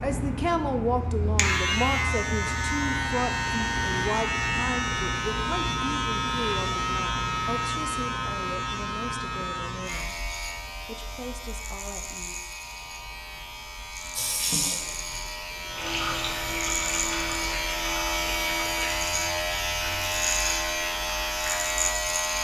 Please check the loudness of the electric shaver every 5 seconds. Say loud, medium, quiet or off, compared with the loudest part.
loud, loud, medium, loud, loud.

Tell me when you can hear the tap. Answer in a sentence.
You can hear the tap from 14.1 to 22.3 s.